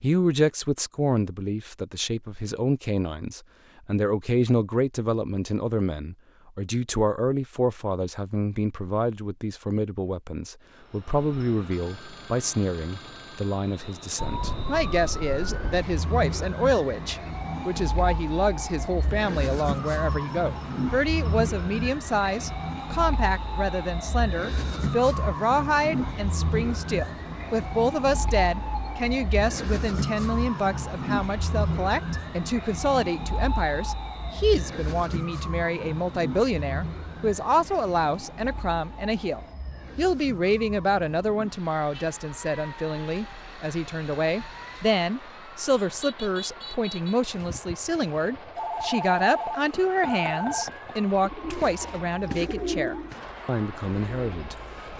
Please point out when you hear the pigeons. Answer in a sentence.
The pigeons can be heard from 51.2 to 54.9 s.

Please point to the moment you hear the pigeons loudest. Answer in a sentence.
The loudest moment of the pigeons is at 53 seconds.